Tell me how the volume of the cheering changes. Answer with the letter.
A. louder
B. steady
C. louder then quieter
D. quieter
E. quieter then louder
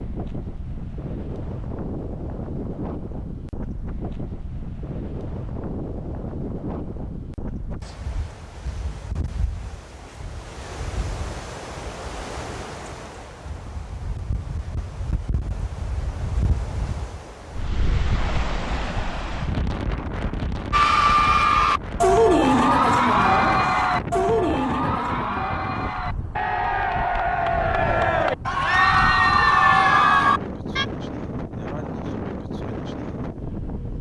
E.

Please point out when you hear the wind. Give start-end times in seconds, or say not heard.
0.0-33.9.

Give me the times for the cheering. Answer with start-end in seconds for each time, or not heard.
20.7-30.9.